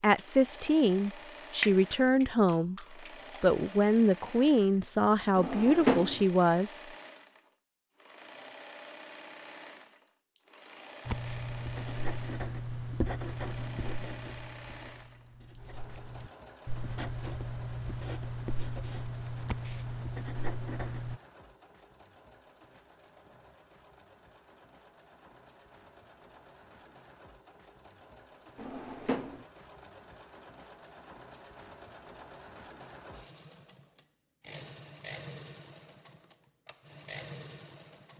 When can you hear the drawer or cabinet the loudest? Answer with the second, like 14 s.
6 s.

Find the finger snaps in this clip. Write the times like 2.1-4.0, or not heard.
1.6-3.4.